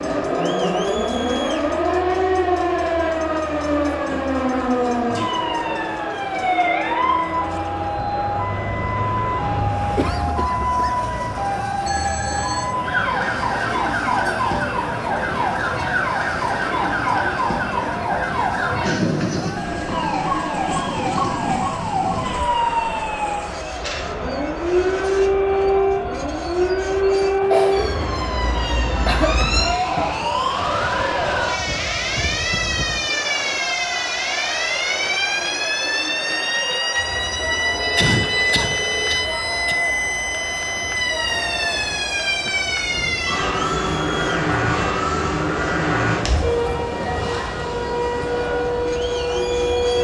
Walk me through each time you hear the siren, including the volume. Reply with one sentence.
The siren can be heard from 0.0 to 49.9 s, at a steady volume.